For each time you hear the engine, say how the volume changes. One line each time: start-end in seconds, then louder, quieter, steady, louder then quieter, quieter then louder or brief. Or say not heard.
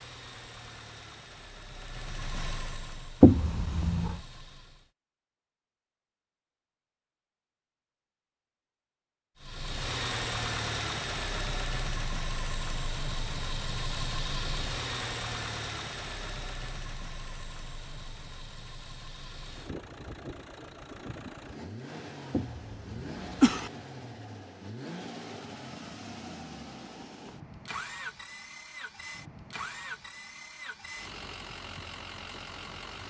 0.0-4.9 louder then quieter
9.4-33.0 quieter.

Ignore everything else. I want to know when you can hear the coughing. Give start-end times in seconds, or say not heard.
3.2-4.2, 22.3-23.7.